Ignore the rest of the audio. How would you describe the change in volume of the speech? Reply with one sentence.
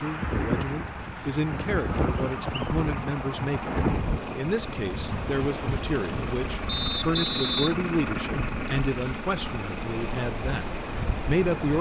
The volume of the speech stays about the same.